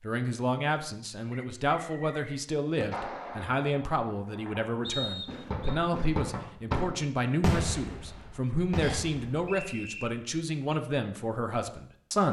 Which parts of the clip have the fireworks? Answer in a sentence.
The fireworks can be heard from 2.8 to 9.5 s.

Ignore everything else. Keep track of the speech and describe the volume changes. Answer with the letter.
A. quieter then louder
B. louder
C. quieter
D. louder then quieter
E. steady
E.